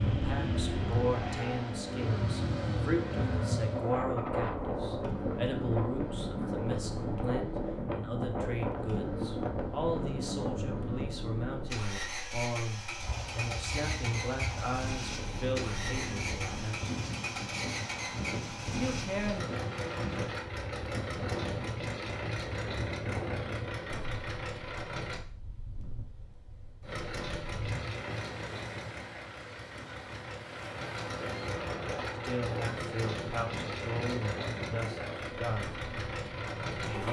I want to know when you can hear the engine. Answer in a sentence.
The engine can be heard from 0.0 to 25.2 s and from 26.8 to 37.0 s.